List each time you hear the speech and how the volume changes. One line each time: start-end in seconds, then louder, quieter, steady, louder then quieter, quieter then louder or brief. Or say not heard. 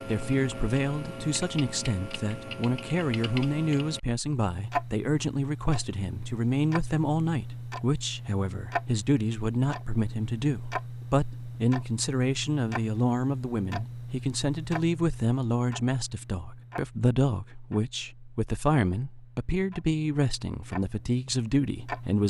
0.1-22.2 steady.